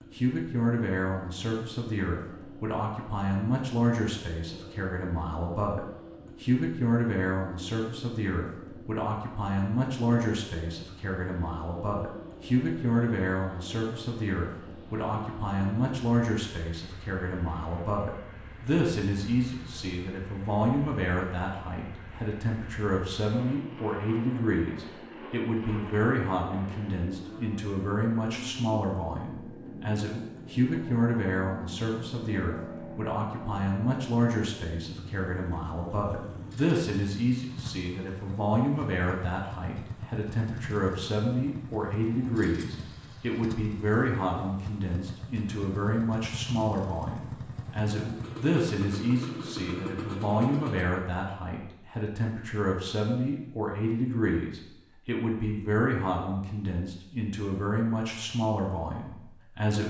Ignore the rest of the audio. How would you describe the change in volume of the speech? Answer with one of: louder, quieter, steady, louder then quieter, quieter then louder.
steady.